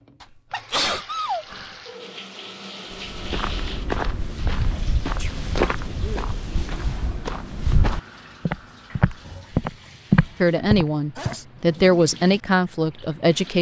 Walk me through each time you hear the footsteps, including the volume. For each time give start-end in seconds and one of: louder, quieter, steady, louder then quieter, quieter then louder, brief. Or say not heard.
2.9-11.3 louder.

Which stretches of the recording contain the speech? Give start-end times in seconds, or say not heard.
10.4-13.5.